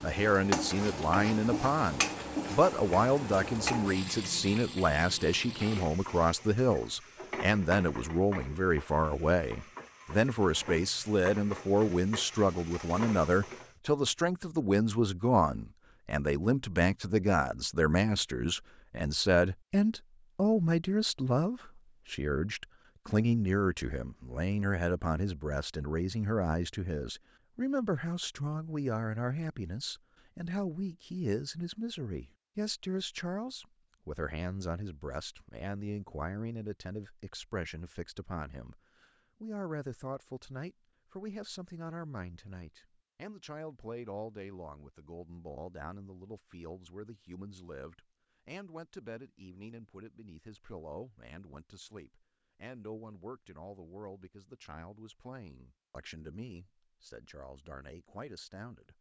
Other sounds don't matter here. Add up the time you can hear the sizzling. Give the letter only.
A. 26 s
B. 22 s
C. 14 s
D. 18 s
C.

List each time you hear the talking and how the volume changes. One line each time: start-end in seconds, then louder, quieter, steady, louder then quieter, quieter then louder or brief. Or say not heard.
0.0-58.9 quieter.